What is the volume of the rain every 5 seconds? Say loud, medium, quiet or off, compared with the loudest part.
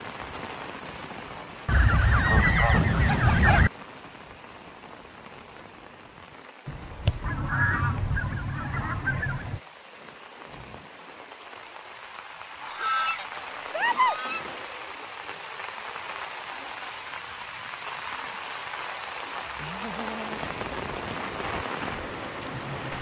medium, quiet, medium, loud, loud.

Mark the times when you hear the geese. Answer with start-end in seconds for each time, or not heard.
1.6-3.7, 6.7-9.6, 12.6-14.6, 19.4-20.5.